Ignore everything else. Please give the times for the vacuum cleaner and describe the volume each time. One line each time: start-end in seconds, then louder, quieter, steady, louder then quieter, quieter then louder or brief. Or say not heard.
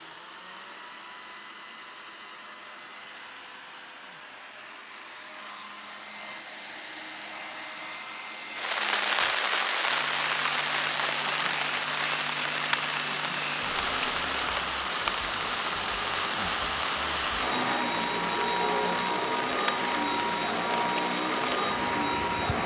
0.0-22.6 louder.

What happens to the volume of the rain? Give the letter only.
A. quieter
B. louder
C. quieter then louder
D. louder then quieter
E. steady
A.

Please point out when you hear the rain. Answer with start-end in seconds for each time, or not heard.
8.6-22.6.